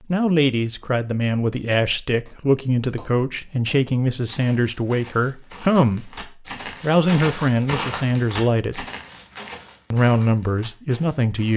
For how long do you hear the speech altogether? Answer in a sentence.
The speech can be heard for 10 seconds in total.